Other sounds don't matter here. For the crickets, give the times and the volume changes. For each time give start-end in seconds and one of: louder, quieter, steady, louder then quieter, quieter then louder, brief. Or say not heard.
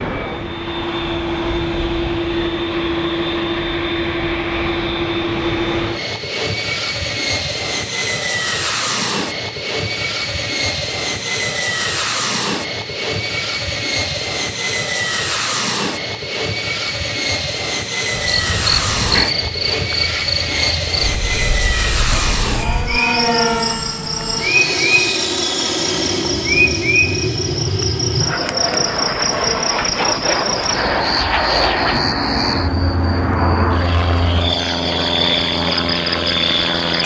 18.1-37.0 steady.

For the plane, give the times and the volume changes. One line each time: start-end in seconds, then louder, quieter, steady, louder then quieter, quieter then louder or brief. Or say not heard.
0.0-37.0 steady.